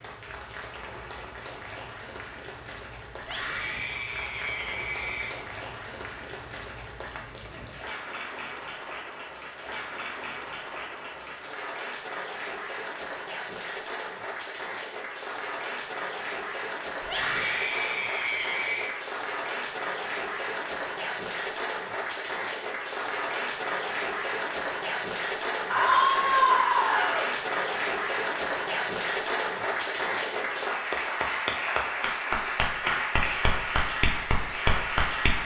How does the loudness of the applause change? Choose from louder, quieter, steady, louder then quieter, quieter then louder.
louder.